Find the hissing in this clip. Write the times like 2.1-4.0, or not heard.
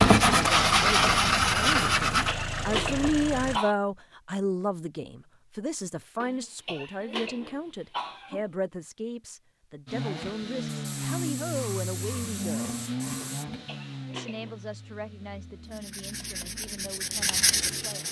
10.7-13.4.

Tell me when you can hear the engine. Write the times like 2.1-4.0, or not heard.
0.0-3.6, 9.8-18.0.